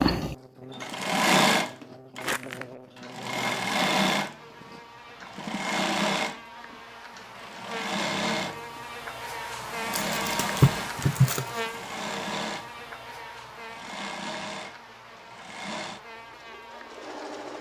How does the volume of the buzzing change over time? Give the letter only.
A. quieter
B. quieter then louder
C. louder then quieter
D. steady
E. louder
C.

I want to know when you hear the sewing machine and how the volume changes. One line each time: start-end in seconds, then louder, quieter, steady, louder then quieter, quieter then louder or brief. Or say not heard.
0.0-17.5 quieter.